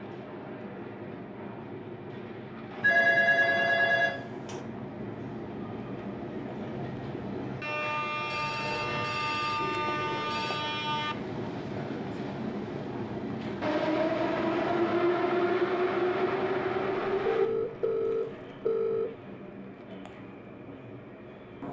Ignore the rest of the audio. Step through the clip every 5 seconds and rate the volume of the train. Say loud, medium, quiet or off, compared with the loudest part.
medium, loud, loud, loud, quiet.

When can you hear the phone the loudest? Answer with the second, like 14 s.
3 s.